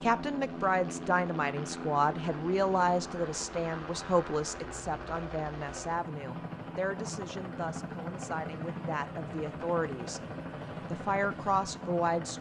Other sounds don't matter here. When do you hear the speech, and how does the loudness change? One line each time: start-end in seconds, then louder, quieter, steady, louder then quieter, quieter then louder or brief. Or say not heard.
0.0-10.2 quieter
10.9-12.3 brief.